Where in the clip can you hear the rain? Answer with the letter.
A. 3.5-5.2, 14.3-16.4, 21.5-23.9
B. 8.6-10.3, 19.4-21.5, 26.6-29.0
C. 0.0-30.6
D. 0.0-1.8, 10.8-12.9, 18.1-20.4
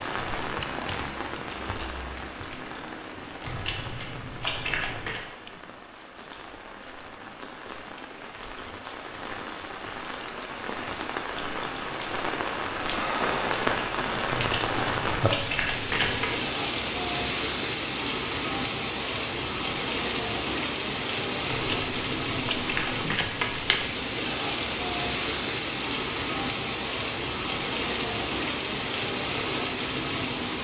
C.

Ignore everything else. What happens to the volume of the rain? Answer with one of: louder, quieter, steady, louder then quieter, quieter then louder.
louder.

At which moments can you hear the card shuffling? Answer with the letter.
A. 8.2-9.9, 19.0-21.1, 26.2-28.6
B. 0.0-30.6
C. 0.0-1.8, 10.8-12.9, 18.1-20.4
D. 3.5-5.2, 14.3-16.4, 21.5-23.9
D.